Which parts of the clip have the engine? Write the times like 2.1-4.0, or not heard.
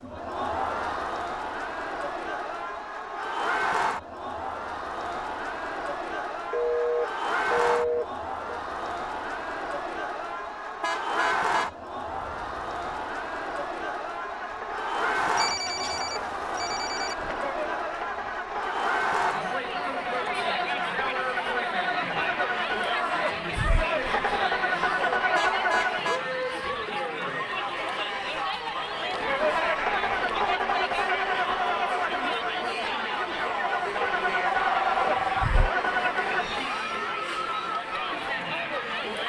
14.2-26.1, 29.1-36.7.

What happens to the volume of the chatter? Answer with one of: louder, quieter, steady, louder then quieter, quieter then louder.
steady.